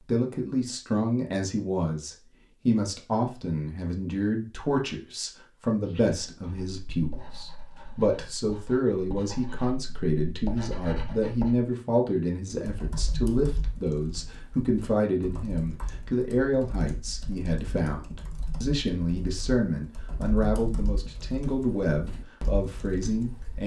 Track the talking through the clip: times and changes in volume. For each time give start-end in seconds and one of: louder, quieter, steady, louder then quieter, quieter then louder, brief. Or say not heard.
0.0-23.6 steady.